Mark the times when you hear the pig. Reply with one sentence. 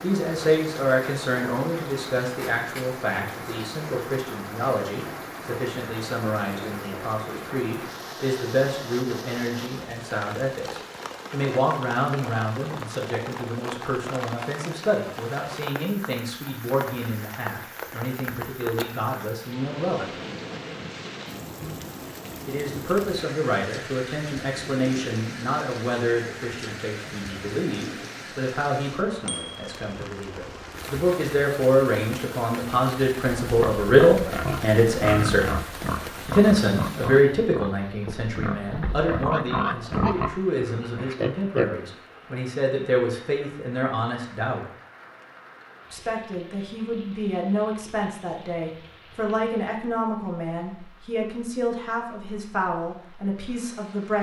The pig can be heard from 33.4 to 41.6 s.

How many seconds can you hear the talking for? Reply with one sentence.
The talking can be heard for 50 seconds in total.